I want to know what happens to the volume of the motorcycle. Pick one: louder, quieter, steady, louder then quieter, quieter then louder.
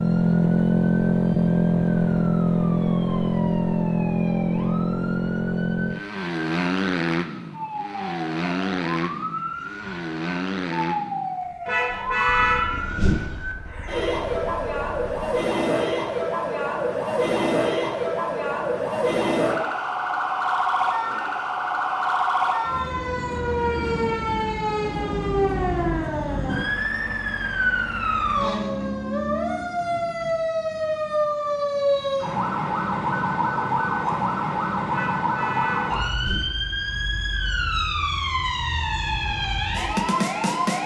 quieter.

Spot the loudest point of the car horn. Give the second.
12 s.